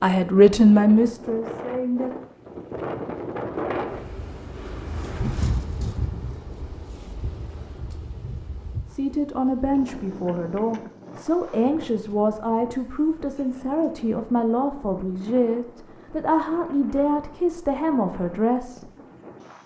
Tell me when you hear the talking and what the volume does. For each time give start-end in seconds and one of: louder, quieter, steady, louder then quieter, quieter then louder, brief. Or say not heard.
0.0-2.1 brief
8.9-18.9 steady.